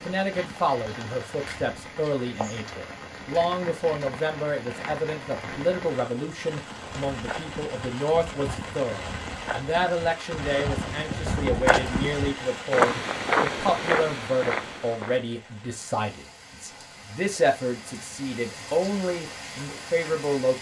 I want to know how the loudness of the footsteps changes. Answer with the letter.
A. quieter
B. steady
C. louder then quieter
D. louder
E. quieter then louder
D.